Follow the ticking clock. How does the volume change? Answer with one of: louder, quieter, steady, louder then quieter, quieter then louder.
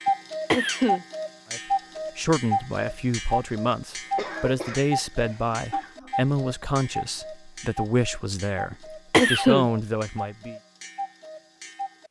quieter.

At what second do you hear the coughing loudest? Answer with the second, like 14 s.
9 s.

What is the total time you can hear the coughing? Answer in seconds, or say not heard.
4 s.